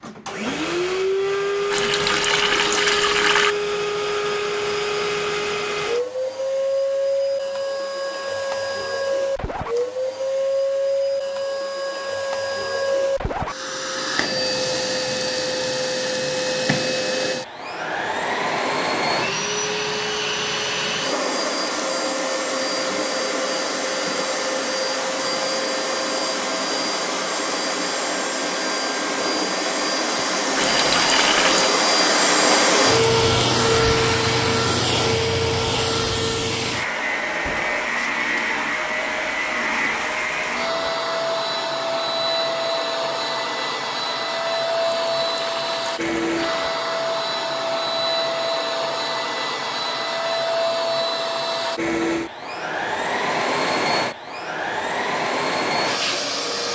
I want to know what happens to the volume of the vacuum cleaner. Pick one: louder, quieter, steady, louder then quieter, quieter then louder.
steady.